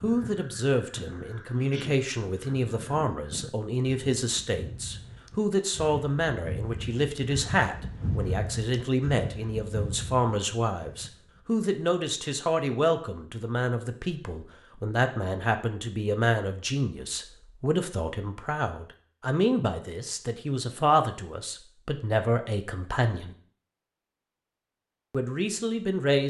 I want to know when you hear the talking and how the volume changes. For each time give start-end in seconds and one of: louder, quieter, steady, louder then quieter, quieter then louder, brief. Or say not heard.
0.0-23.4 steady
25.1-26.2 brief.